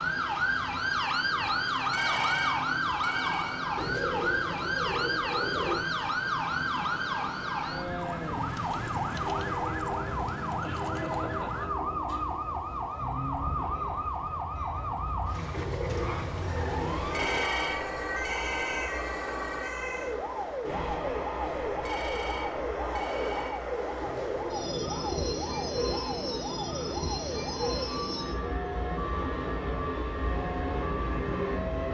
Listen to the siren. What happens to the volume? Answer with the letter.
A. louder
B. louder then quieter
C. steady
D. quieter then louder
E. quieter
E.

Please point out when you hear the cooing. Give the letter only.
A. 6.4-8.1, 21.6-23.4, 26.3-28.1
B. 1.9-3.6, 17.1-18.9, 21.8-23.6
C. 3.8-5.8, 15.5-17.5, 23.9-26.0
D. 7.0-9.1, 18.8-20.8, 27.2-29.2
C.